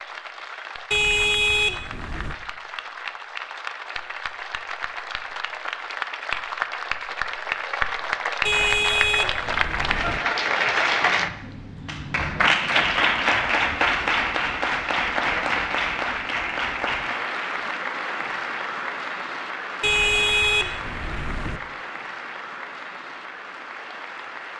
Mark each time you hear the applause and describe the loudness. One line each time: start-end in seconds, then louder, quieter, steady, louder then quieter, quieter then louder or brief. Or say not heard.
0.0-24.5 louder then quieter.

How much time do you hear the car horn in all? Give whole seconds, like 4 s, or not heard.
5 s.